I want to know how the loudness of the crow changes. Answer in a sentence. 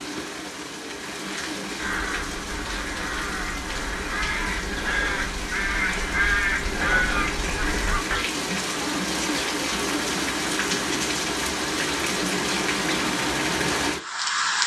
The loudness of the crow goes up.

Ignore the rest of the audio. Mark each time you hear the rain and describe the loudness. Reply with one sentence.
You can hear the rain from 0.0 to 14.6 s, getting louder.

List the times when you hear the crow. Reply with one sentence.
You can hear the crow from 1.8 to 8.2 s.